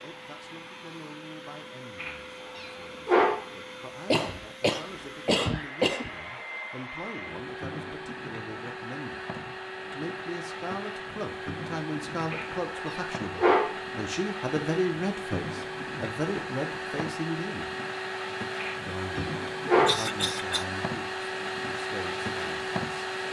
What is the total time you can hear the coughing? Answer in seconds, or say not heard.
3 s.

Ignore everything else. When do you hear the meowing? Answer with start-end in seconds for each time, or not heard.
2.0-3.5, 12.3-13.8, 18.6-20.0.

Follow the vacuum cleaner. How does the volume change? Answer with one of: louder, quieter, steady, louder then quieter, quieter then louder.
louder.